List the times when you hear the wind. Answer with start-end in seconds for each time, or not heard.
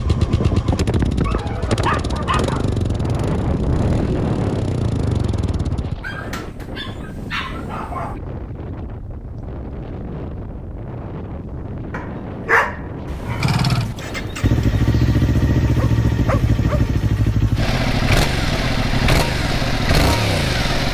0.0-17.0.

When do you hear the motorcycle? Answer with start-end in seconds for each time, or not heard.
0.0-6.0, 13.3-20.8.